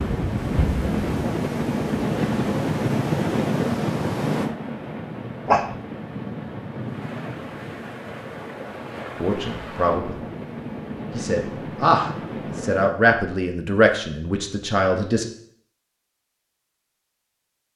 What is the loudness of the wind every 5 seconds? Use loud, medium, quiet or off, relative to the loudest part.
loud, medium, medium, off.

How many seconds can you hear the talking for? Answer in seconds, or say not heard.
5 s.